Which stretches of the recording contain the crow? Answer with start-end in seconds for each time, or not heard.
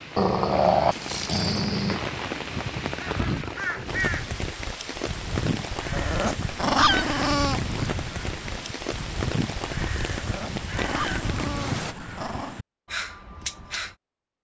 3.0-13.9.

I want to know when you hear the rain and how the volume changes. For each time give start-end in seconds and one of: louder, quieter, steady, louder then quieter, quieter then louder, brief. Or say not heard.
0.0-11.9 steady.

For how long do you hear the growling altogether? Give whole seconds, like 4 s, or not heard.
6 s.